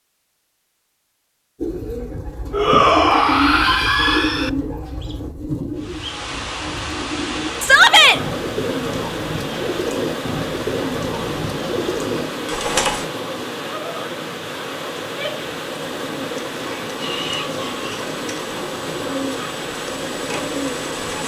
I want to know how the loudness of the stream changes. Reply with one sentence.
The loudness of the stream stays about the same.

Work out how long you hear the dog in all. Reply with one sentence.
You can't hear the dog here.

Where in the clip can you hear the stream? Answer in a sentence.
You can hear the stream from 5.8 to 21.2 s.